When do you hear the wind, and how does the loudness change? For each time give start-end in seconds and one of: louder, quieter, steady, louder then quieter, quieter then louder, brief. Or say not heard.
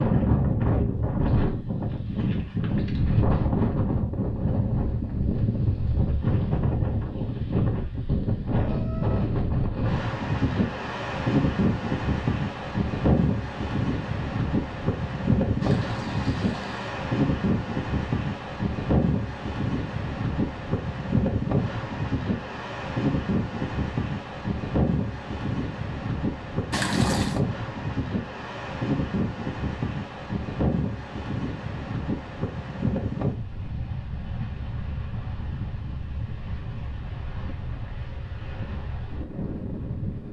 0.0-40.2 quieter.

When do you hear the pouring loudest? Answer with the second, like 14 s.
27 s.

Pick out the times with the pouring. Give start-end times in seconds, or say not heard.
15.6-17.0, 26.7-27.4.